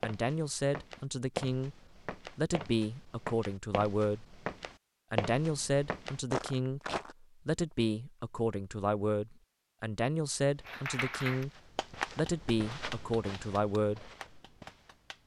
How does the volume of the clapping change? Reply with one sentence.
The loudness of the clapping goes down, then up.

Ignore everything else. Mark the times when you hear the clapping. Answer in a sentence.
The clapping can be heard from 10.7 to 15.2 s.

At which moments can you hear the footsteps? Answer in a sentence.
The footsteps can be heard from 0.0 to 7.2 s and from 10.4 to 15.2 s.